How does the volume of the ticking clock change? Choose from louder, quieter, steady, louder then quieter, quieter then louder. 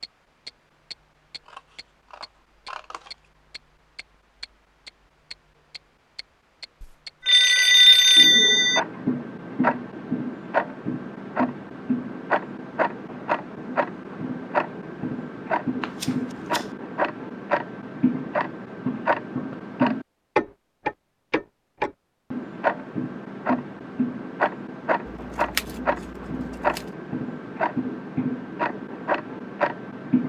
louder.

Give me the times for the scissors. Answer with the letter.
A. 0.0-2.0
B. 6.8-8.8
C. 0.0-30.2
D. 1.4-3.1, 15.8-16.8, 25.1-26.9
D.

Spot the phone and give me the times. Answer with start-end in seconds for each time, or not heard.
6.8-8.8.